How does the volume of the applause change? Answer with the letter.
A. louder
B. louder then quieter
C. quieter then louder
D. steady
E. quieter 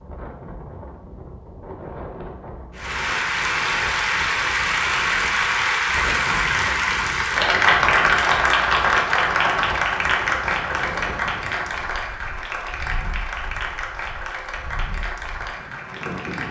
E.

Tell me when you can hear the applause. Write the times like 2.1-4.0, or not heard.
2.7-16.4.